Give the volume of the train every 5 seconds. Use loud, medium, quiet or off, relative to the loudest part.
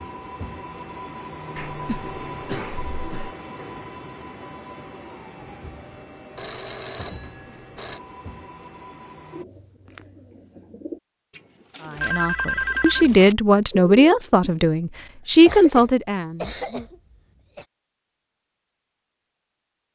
loud, medium, off, off.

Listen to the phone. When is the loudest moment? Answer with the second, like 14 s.
13 s.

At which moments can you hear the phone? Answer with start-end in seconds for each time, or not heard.
6.3-8.0, 11.9-13.2.